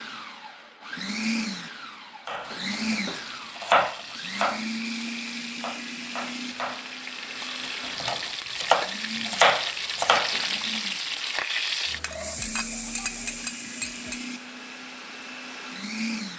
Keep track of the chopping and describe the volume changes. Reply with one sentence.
The volume of the chopping goes down, then up.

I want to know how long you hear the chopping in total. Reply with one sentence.
You can hear the chopping for 8 seconds altogether.